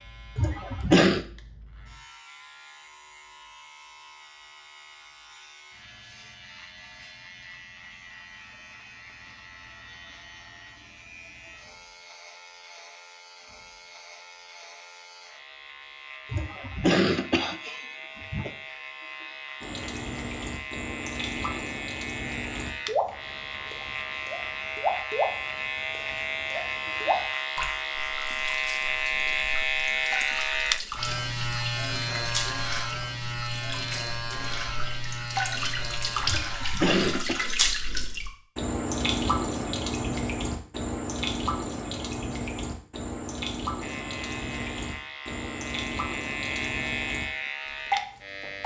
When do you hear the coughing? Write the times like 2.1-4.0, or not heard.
0.3-1.2, 16.3-18.5, 36.2-37.5.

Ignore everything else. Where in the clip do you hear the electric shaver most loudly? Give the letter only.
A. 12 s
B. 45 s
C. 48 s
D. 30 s
D.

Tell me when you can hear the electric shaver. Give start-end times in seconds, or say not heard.
0.0-37.2, 43.8-48.6.